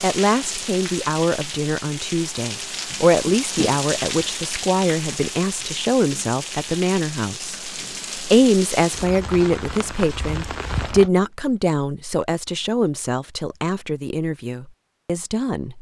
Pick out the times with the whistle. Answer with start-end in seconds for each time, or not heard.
not heard.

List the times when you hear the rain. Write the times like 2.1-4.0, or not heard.
0.0-11.1.